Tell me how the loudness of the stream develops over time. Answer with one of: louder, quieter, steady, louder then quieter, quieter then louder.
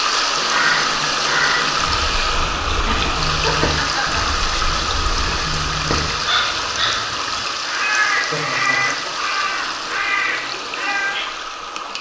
quieter.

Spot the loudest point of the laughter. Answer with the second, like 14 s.
4 s.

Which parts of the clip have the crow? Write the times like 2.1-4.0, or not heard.
0.3-11.2.